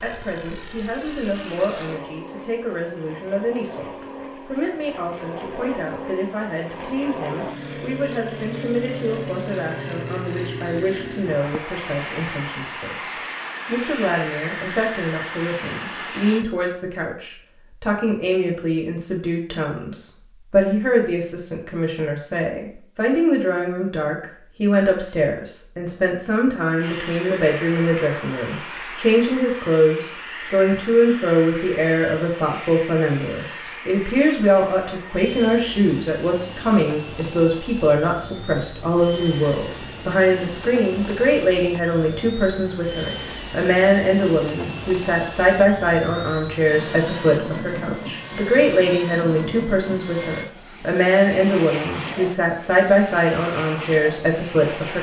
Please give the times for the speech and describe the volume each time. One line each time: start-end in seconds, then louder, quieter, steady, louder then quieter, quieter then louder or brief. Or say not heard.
0.0-54.9 louder.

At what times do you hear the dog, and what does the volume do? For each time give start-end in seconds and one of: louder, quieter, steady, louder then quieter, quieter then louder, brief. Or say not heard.
not heard.